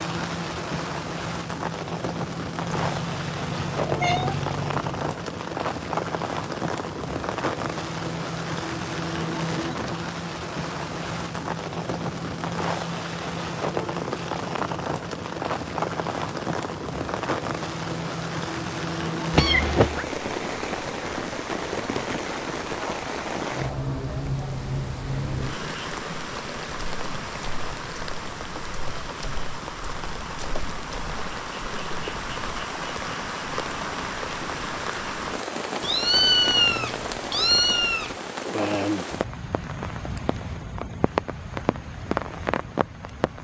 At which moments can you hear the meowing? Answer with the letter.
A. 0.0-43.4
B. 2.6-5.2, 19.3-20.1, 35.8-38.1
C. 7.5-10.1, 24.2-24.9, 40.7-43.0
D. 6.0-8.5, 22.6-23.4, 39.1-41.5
B.